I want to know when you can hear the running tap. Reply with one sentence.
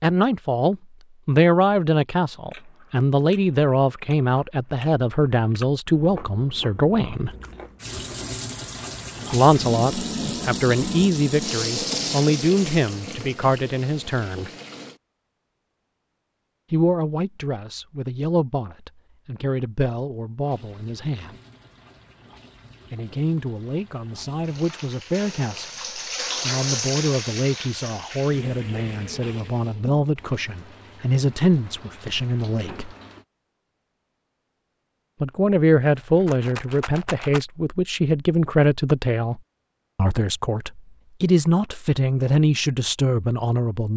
You can hear the running tap from 7.8 to 15.0 s and from 20.4 to 33.2 s.